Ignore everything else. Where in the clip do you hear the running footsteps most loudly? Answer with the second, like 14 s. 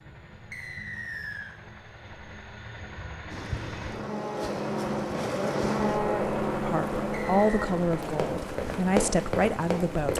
9 s.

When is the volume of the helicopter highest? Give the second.
6 s.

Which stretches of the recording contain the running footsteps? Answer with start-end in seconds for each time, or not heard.
7.9-10.1.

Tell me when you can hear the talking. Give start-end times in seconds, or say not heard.
6.7-10.1.